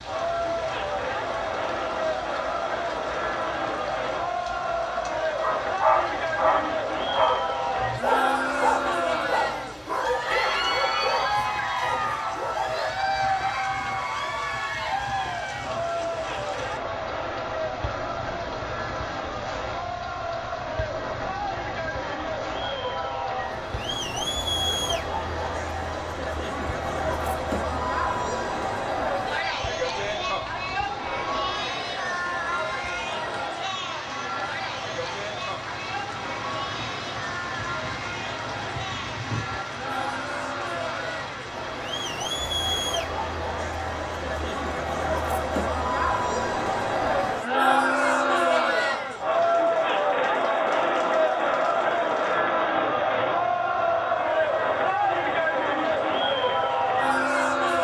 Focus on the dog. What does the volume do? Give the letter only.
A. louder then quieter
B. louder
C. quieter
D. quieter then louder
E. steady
C.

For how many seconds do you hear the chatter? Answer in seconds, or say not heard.
58 s.